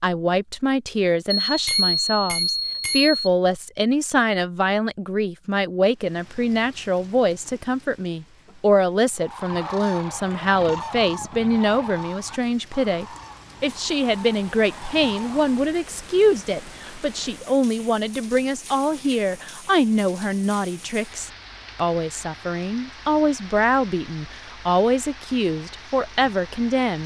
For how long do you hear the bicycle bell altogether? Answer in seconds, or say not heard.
2 s.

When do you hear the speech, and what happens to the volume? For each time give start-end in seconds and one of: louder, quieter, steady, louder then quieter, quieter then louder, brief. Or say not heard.
0.0-27.0 steady.